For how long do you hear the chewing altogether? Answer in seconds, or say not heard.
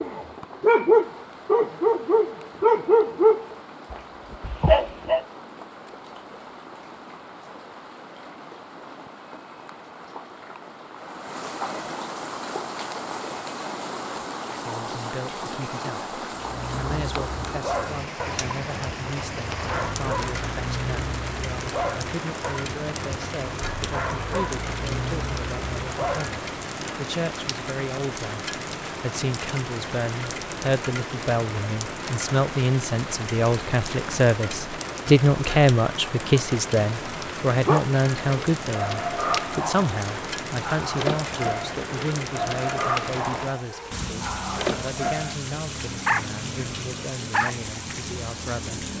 not heard.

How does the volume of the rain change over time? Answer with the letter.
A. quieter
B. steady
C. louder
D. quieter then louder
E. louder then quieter
C.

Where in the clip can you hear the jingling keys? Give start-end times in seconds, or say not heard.
not heard.